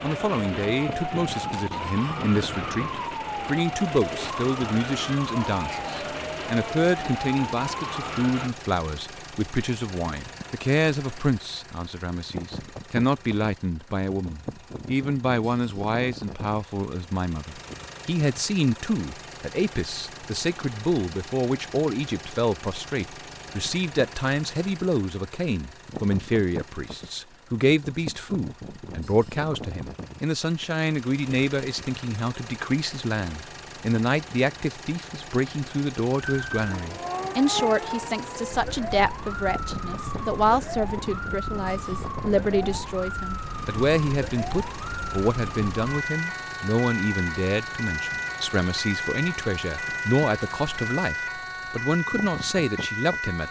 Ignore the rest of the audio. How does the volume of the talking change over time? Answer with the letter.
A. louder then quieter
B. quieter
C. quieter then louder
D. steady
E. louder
D.